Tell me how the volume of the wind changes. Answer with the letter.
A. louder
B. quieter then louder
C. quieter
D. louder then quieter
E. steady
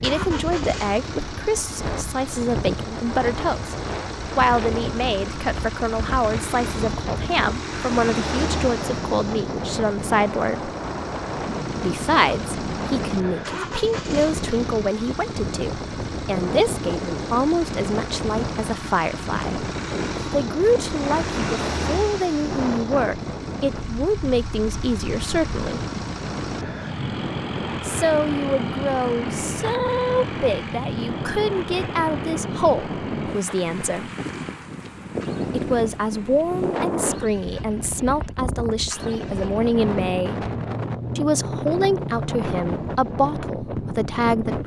E.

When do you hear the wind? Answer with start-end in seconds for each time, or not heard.
0.0-44.6.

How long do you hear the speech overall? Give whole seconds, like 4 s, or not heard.
39 s.